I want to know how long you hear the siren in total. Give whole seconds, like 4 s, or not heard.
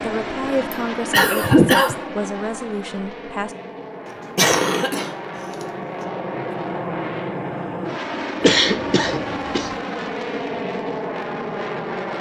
not heard.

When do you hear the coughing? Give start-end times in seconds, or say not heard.
0.7-1.9, 4.3-5.2, 8.4-9.8.